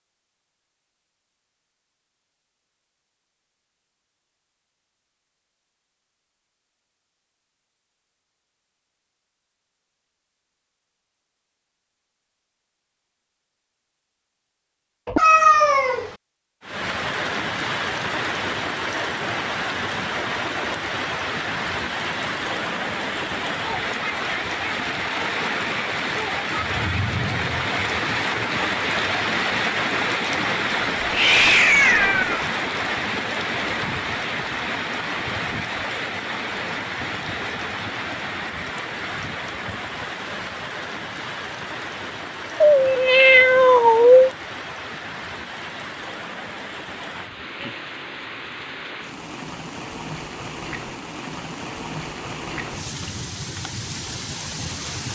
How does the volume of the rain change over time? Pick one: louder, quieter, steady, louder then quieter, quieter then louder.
quieter.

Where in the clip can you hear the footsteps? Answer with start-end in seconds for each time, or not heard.
not heard.